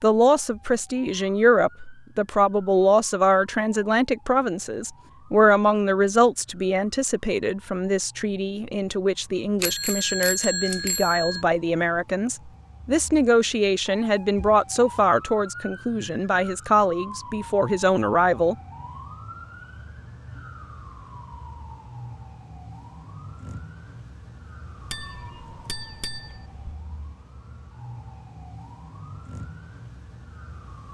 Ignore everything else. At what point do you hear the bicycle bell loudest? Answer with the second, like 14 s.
10 s.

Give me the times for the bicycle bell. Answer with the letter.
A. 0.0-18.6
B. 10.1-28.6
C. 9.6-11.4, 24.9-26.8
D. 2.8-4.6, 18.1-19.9
C.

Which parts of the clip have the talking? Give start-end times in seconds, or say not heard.
0.0-18.6.